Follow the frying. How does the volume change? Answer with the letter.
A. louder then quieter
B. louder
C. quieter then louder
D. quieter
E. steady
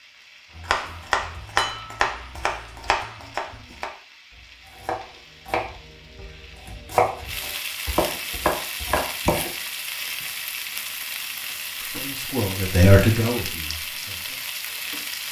B.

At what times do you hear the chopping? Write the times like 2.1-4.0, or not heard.
0.6-9.5.